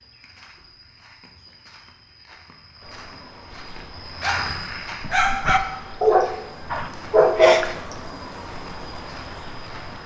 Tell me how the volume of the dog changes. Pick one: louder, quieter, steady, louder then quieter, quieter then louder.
louder.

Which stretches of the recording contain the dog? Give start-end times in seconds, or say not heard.
3.6-7.7.